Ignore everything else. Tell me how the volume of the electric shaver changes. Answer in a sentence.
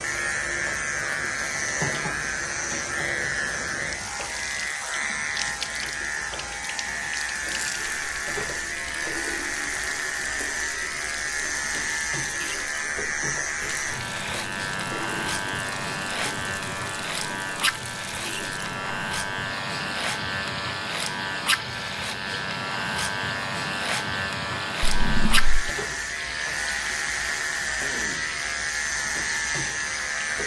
The loudness of the electric shaver stays about the same.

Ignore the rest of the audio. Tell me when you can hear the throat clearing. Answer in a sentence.
The throat clearing can be heard from 27.8 to 28.4 s.